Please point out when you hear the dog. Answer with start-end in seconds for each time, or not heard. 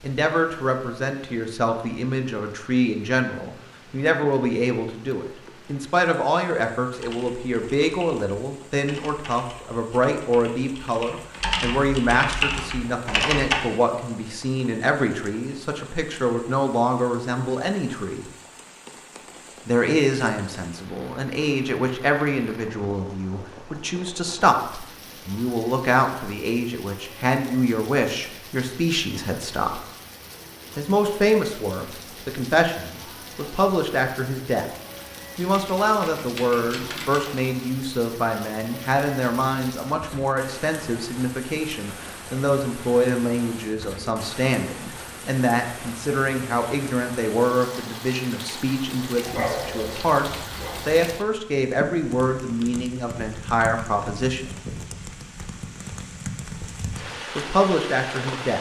49.2-51.0.